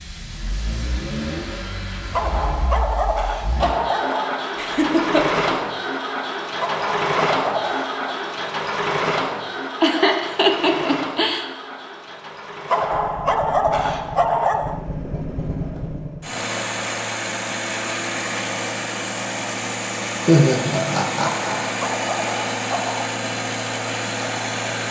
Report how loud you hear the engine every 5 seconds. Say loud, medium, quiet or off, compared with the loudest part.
medium, loud, medium, loud, loud.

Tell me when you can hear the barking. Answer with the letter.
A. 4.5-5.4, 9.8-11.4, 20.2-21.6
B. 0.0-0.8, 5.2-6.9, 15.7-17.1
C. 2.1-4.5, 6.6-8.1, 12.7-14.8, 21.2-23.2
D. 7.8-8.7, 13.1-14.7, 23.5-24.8
C.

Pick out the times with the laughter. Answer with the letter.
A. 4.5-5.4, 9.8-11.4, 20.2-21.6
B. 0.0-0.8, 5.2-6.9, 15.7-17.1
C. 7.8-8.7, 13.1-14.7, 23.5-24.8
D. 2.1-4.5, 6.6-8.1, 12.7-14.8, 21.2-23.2
A.